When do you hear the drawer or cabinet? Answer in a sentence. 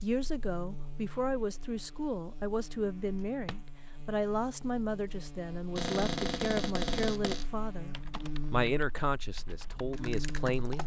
The drawer or cabinet can be heard from 3.0 to 3.7 s and from 5.8 to 7.5 s.